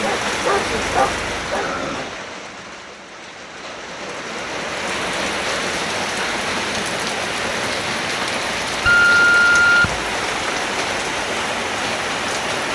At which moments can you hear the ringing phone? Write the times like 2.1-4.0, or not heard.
8.8-9.9.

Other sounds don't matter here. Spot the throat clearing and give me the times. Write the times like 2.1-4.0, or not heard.
1.6-2.1.